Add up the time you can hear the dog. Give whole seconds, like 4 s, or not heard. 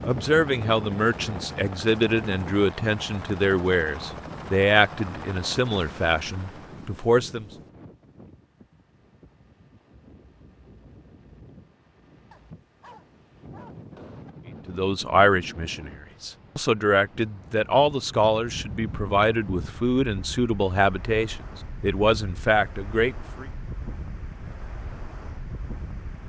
2 s.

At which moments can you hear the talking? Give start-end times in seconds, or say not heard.
0.0-7.5, 14.7-23.4.